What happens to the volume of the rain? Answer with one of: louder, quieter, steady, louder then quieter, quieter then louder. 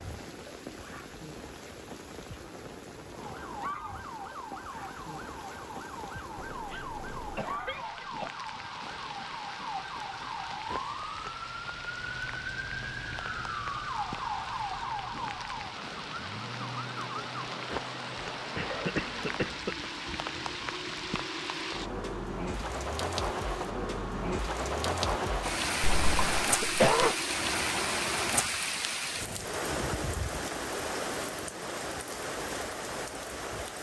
louder.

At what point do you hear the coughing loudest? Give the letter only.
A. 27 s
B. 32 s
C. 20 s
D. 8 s
A.